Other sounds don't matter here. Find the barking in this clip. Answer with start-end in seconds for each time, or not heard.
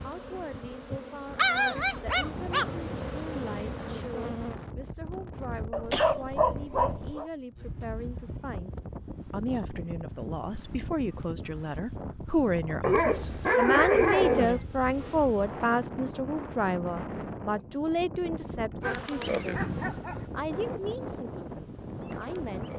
1.4-2.8, 5.7-7.2, 12.8-14.6, 18.8-20.2.